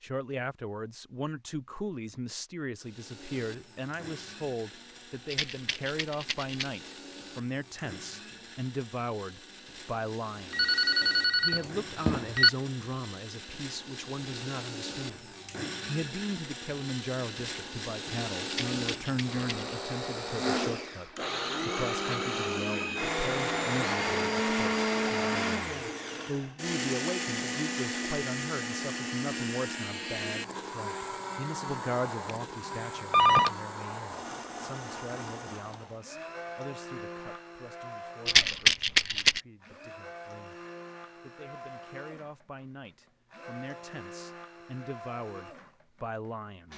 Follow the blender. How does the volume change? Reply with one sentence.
The loudness of the blender goes up, then down.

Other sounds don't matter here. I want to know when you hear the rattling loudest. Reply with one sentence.
The loudest moment of the rattling is at 39 seconds.